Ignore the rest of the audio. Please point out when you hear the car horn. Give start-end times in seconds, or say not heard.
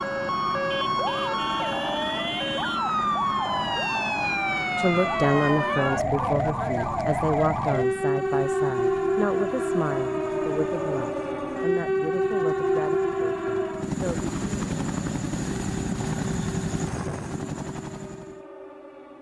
not heard.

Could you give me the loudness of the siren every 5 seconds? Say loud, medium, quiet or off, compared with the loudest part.
loud, loud, loud, quiet.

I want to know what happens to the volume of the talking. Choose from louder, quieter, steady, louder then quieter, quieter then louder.
quieter.